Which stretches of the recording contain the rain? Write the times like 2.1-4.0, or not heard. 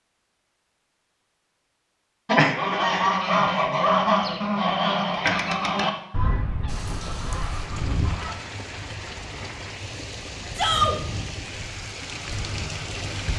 6.7-13.3.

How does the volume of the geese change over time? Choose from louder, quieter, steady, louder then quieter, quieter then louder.
quieter.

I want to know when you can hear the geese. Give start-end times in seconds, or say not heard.
2.2-8.3.